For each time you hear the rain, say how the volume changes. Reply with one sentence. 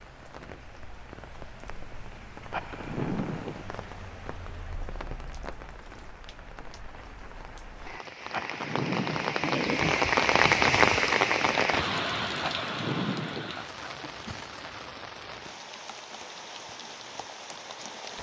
The rain can be heard from 0.0 to 18.1 s, getting louder then quieter.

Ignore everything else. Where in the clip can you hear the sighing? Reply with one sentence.
You can hear the sighing from 2.5 to 3.6 s, from 8.3 to 9.4 s and from 12.4 to 13.6 s.